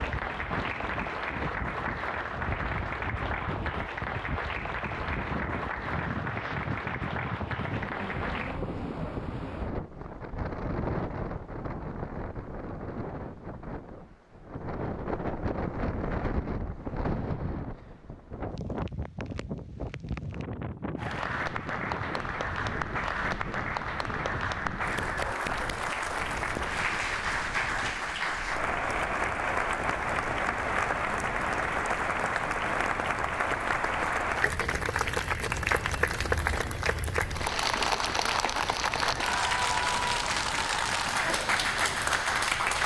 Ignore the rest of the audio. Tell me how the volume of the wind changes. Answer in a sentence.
The loudness of the wind goes down.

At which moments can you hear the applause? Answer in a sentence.
You can hear the applause from 0.0 to 8.6 s and from 20.9 to 42.8 s.